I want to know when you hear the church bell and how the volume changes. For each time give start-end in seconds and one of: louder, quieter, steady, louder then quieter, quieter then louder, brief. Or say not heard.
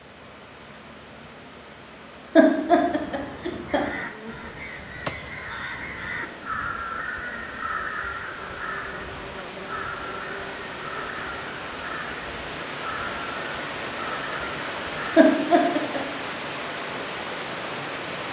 not heard.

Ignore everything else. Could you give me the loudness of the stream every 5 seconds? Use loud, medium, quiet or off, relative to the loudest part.
quiet, medium, loud, loud.